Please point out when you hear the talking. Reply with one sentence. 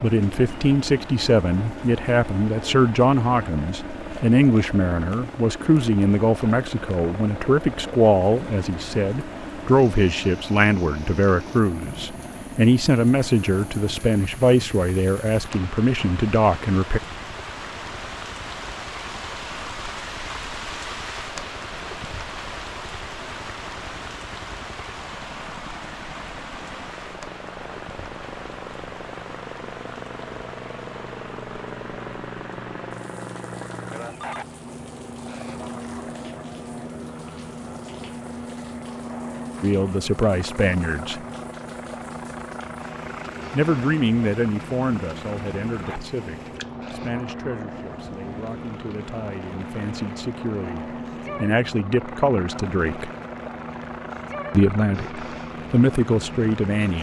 You can hear the talking from 0.0 to 17.0 s, from 39.6 to 41.2 s, from 43.5 to 53.1 s and from 54.5 to 56.9 s.